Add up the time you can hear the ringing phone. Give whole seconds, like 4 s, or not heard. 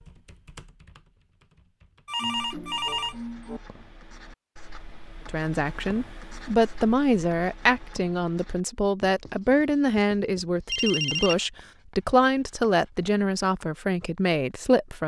2 s.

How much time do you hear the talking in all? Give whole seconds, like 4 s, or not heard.
10 s.